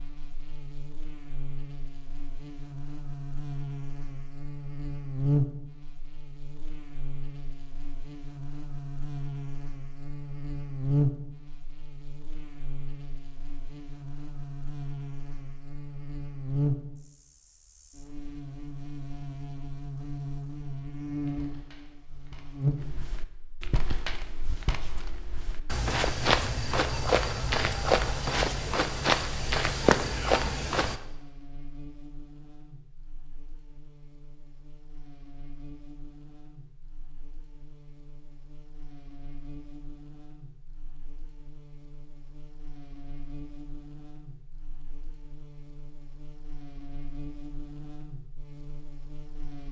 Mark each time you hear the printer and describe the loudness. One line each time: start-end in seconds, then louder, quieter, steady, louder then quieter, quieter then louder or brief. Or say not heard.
not heard.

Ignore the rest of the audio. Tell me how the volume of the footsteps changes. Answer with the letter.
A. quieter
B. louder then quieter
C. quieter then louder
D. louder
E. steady
D.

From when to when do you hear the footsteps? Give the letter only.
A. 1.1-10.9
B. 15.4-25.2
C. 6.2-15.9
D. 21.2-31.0
D.